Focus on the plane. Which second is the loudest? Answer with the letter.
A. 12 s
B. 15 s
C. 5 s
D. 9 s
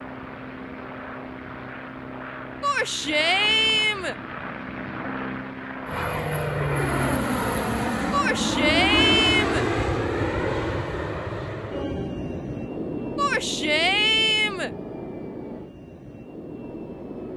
D.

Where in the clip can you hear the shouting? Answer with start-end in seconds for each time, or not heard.
2.6-4.2, 8.1-9.7, 13.2-14.7.